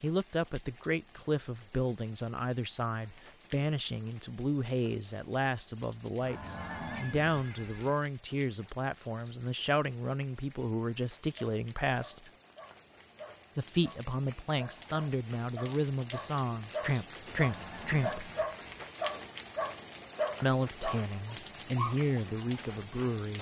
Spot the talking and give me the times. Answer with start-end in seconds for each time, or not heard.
0.0-12.3, 13.6-18.3, 20.4-23.3.